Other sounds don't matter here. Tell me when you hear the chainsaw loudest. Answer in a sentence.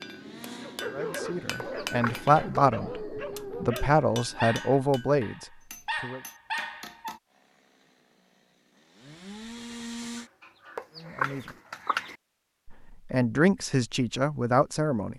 The loudest moment of the chainsaw is at 10 seconds.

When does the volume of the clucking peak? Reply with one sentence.
The volume of the clucking peaks at 11 seconds.